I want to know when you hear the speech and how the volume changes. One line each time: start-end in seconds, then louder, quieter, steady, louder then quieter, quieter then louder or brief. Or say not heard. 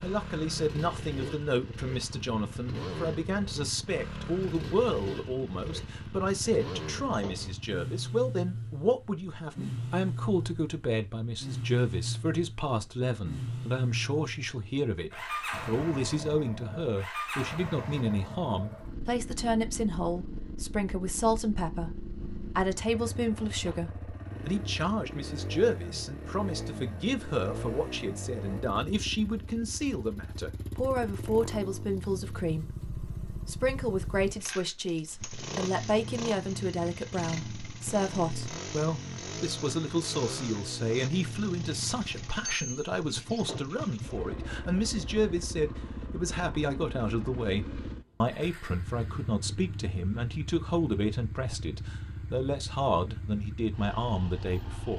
0.0-54.9 steady.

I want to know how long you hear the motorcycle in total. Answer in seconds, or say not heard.
55 s.